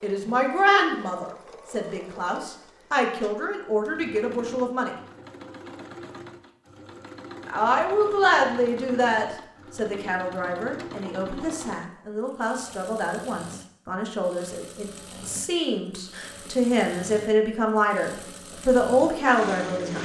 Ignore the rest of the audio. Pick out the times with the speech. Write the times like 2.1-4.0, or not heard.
0.0-5.0, 7.5-19.9.